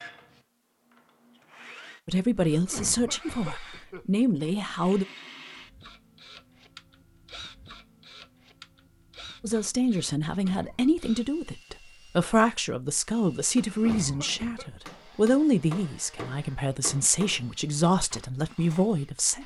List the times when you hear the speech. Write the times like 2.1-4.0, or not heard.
2.0-5.0, 9.4-19.4.